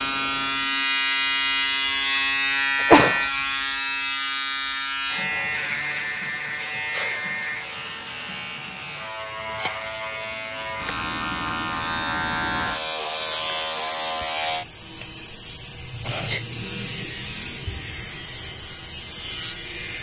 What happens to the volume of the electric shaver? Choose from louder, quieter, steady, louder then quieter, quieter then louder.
quieter then louder.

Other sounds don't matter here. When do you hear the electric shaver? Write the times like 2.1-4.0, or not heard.
0.0-19.9.